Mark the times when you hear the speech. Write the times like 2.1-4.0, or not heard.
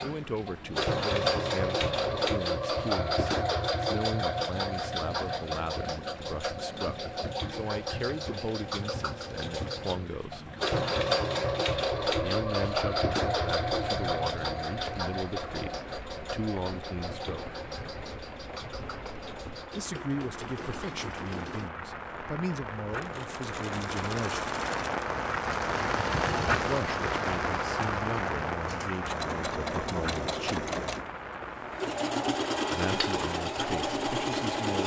0.0-10.5, 12.2-17.6, 19.8-24.5, 26.6-30.7, 32.7-34.8.